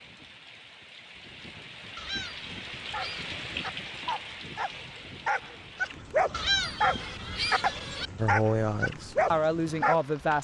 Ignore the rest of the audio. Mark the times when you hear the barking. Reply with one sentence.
The barking can be heard from 2.7 to 10.0 s.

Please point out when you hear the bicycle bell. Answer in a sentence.
The bicycle bell can't be heard in this clip.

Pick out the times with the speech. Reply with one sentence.
You can hear the speech from 8.2 to 10.3 s.